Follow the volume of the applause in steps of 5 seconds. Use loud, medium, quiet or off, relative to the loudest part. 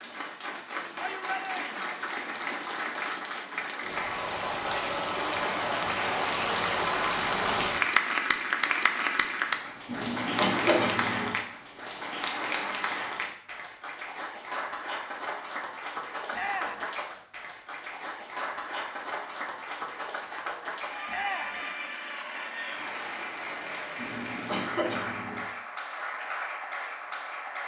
medium, loud, medium, medium, medium, medium.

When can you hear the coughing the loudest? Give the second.
11 s.